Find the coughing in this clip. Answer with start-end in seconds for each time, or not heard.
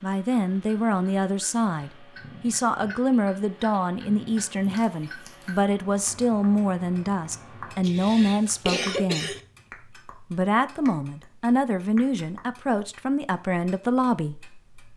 7.8-9.4.